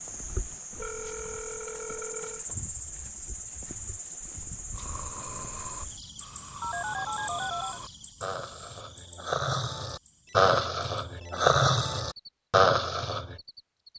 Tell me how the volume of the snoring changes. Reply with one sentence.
The volume of the snoring goes up.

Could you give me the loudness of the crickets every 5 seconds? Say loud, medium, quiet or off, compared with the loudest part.
loud, loud, quiet.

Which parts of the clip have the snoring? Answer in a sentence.
You can hear the snoring from 4.7 to 13.4 s.